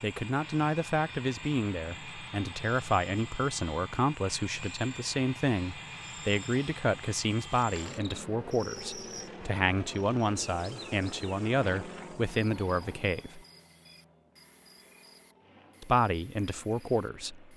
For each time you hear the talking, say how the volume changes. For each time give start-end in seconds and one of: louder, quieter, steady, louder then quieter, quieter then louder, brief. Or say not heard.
0.0-13.4 steady
15.8-17.5 brief.